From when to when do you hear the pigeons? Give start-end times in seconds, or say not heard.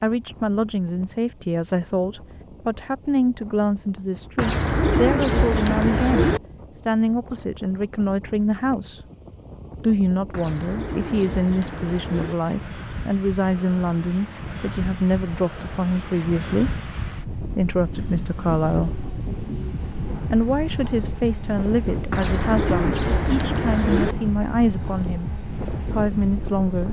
4.3-6.4, 10.3-12.3, 22.1-24.1.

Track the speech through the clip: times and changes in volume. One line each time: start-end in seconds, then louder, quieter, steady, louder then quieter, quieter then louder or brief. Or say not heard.
0.0-9.0 steady
9.8-19.0 steady
20.3-25.3 steady
25.9-26.8 brief.